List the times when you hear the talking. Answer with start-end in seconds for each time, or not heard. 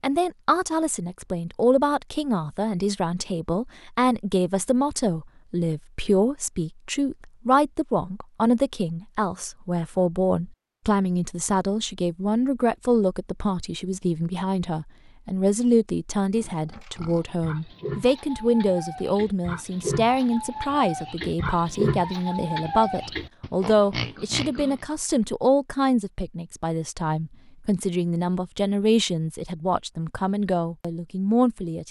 0.0-31.8.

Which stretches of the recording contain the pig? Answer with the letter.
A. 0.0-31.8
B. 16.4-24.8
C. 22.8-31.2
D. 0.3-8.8
B.